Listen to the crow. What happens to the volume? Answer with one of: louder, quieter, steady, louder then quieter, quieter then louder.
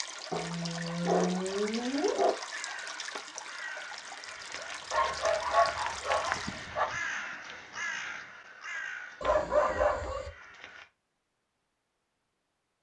louder then quieter.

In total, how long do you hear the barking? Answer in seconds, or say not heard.
5 s.